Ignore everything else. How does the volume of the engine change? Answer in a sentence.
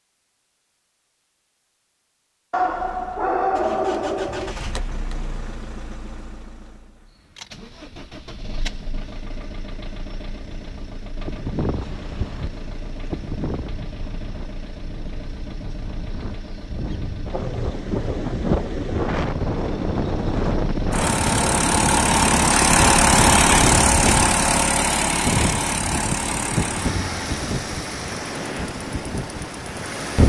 The volume of the engine goes up, then down.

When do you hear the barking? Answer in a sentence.
The barking can be heard from 2.5 to 4.5 s.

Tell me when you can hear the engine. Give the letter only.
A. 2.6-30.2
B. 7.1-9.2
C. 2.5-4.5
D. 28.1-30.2
A.